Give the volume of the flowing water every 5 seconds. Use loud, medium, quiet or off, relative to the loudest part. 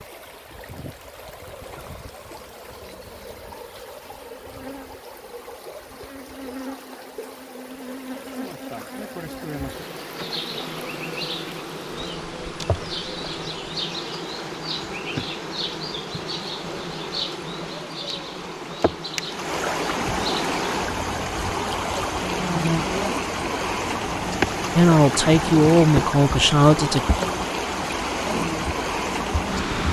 quiet, quiet, quiet, medium, loud, loud.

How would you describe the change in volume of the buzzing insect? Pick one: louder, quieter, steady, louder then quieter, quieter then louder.
louder.